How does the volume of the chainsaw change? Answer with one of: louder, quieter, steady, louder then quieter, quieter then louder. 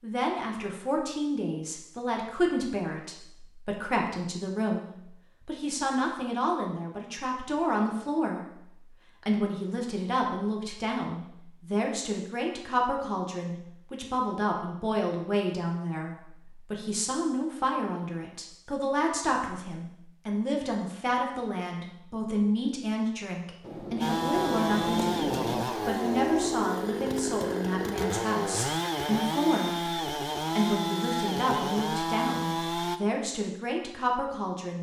steady.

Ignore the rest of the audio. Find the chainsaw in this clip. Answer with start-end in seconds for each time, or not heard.
24.0-33.0.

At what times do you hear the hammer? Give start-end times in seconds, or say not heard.
23.6-25.6.